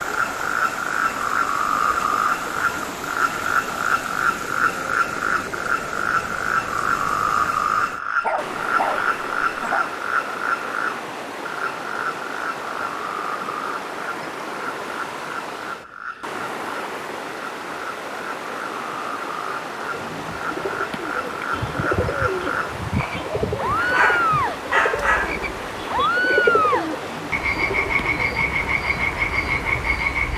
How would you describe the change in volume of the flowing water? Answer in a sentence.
The loudness of the flowing water stays about the same.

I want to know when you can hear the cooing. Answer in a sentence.
The cooing can be heard from 19.9 to 28.4 s.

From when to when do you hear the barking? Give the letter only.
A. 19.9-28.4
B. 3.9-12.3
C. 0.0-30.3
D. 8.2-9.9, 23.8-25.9
D.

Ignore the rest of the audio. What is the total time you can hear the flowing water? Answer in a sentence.
You can hear the flowing water for 30 seconds altogether.